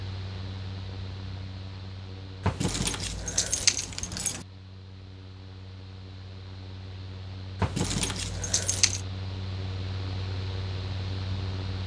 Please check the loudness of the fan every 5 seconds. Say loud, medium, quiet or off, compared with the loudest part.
medium, medium, loud.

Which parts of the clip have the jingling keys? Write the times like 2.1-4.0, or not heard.
2.4-4.5, 7.6-9.0.